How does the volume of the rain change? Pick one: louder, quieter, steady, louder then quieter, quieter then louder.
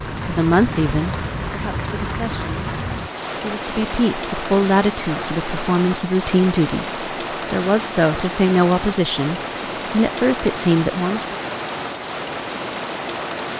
steady.